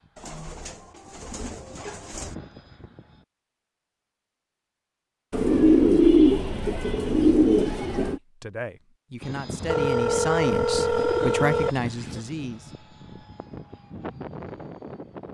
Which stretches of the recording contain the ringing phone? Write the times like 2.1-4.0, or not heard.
9.6-11.8.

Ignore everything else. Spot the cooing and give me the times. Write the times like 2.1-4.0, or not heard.
0.1-2.4, 5.3-8.2, 10.9-12.2.